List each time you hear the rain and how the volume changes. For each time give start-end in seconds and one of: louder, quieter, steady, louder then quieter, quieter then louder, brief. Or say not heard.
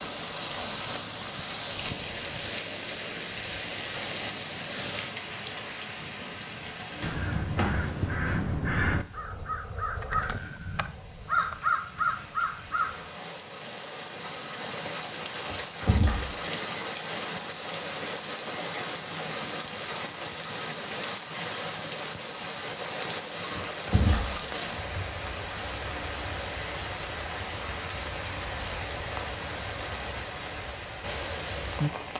0.0-32.1 quieter then louder.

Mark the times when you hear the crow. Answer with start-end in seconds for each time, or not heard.
7.0-13.1.